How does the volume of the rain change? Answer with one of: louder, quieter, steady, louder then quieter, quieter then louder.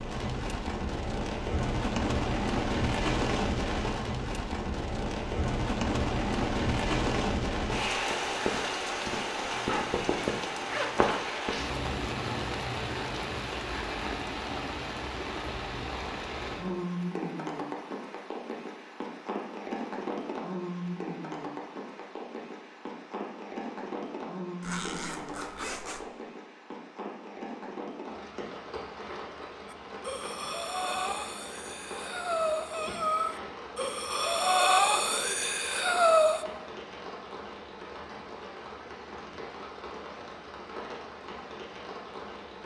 quieter.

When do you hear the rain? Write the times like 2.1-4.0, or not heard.
0.0-42.6.